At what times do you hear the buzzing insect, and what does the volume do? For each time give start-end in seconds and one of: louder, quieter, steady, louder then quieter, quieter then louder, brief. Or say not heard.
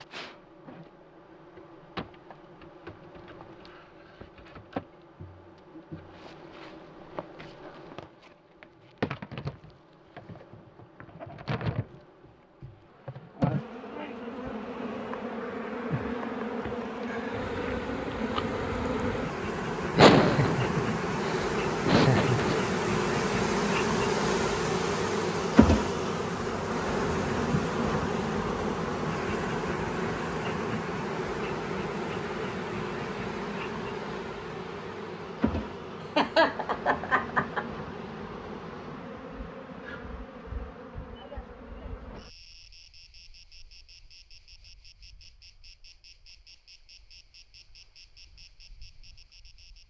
0.0-49.8 louder then quieter.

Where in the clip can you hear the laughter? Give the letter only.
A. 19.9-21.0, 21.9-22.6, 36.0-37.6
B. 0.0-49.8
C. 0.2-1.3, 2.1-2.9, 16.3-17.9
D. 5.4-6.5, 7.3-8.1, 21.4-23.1
A.